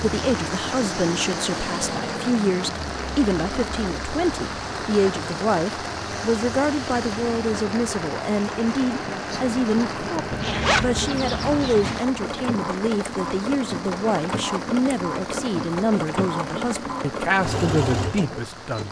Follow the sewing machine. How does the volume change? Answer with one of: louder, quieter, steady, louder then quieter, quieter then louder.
louder.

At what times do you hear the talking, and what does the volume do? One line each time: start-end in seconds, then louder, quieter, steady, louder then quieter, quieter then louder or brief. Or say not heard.
0.0-18.8 steady.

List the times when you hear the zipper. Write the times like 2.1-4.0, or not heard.
10.3-12.1.